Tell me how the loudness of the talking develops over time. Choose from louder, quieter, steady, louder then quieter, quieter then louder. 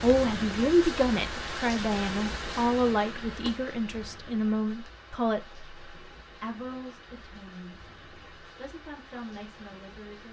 quieter.